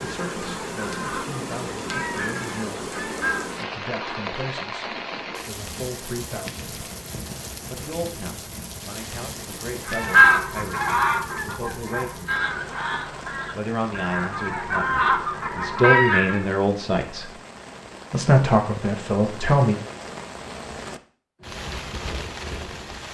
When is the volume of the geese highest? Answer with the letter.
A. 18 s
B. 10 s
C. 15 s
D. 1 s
B.